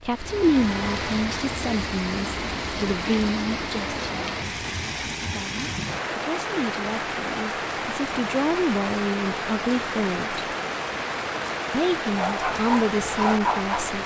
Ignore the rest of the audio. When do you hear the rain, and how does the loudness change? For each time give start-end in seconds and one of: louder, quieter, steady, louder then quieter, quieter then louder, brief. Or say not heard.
0.0-14.0 steady.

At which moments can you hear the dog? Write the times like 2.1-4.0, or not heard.
12.2-13.9.